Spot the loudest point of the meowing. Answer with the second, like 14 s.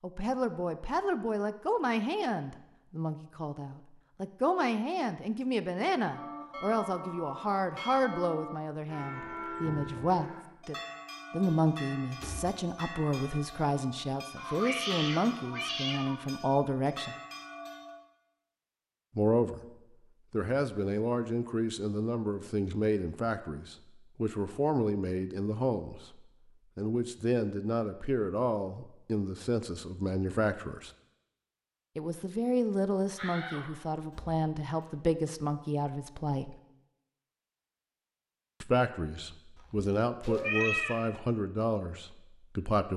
41 s.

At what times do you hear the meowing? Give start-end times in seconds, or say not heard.
14.3-16.1, 39.5-41.0.